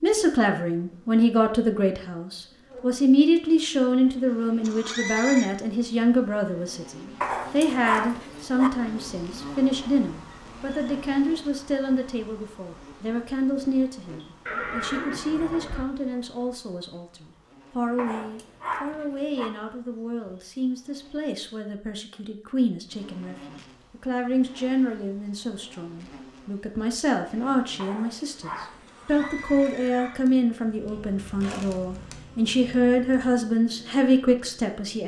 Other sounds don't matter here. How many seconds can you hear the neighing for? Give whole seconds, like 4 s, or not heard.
4 s.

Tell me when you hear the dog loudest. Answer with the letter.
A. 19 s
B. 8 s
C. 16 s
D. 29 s
B.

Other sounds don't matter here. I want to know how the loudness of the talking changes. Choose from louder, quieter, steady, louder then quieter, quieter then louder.
quieter then louder.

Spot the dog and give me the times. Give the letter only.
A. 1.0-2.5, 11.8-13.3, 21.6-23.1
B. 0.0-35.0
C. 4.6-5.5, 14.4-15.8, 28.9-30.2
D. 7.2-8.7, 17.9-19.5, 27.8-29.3
D.